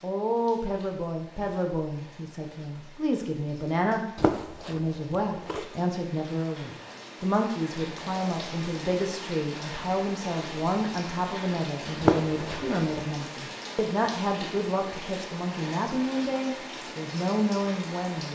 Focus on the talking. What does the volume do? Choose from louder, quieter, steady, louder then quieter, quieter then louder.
steady.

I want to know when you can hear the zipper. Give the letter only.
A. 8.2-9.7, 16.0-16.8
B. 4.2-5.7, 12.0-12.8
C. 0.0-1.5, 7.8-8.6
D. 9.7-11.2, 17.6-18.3
B.